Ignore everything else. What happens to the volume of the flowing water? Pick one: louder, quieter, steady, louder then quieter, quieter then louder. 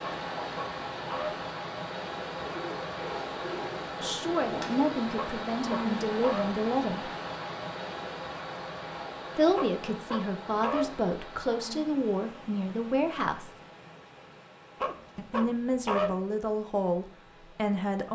quieter.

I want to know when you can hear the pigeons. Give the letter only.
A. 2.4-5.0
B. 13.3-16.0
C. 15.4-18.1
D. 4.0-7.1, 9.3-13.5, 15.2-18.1
A.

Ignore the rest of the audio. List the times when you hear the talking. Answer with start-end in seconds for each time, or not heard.
4.0-7.1, 9.3-13.5, 15.2-18.1.